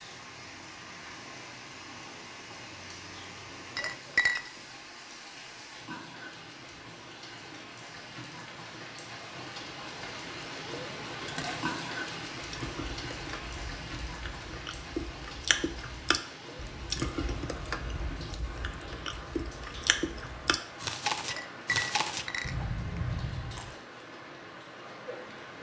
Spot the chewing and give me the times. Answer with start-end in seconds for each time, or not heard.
12.4-23.8.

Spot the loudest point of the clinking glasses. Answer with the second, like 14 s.
4 s.